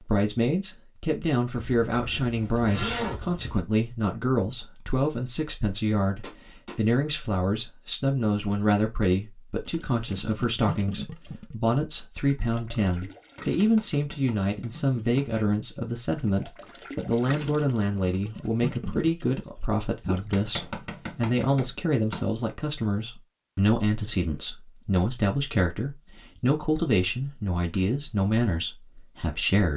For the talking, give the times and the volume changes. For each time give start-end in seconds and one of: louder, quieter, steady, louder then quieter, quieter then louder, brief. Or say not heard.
0.0-29.7 steady.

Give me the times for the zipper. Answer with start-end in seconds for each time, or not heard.
1.6-3.6.